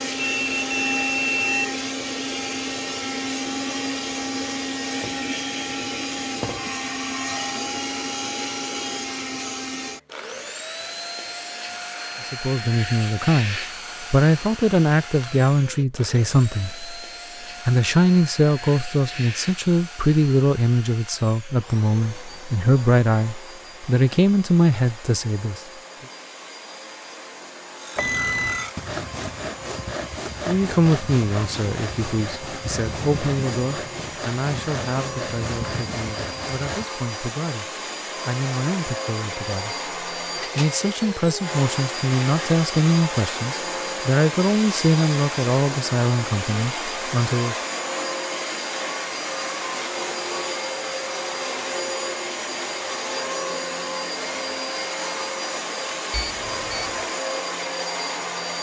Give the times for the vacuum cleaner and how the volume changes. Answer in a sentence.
The vacuum cleaner can be heard from 0.0 to 58.5 s, getting quieter then louder.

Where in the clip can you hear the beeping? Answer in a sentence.
You can hear the beeping from 0.2 to 1.6 s, from 27.9 to 28.7 s and from 56.1 to 57.0 s.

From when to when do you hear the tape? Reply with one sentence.
The tape can't be heard in this clip.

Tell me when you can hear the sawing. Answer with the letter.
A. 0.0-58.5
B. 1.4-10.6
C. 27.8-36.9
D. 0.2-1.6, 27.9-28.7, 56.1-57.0
C.